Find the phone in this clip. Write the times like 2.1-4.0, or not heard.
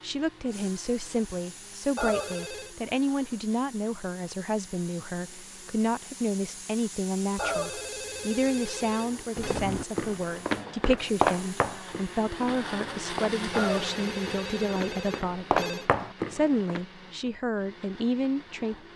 1.9-2.8, 7.3-9.6, 13.5-15.9.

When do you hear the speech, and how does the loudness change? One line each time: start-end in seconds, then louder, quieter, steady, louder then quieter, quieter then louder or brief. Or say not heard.
0.0-18.8 steady.